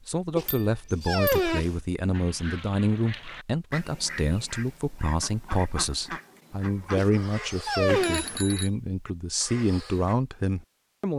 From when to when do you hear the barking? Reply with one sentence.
You can hear the barking from 0.3 to 1.8 s and from 7.0 to 8.3 s.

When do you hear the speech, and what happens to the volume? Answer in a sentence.
The speech can be heard from 0.1 to 11.1 s, at a steady volume.